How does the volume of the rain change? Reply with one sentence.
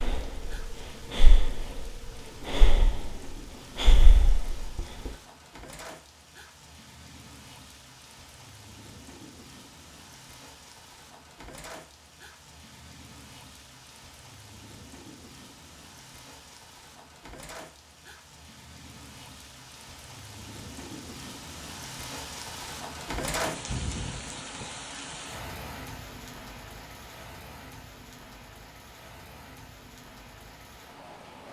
The loudness of the rain goes up, then down.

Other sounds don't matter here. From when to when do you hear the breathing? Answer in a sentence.
The breathing can be heard from 0.0 to 5.1 s.